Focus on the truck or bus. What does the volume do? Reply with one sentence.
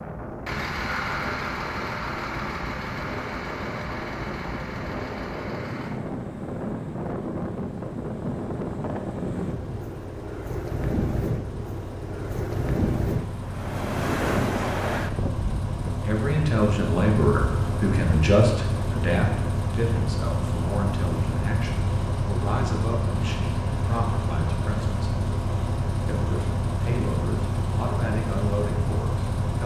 The loudness of the truck or bus goes down, then up.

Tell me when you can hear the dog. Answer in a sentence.
The dog can't be heard in this clip.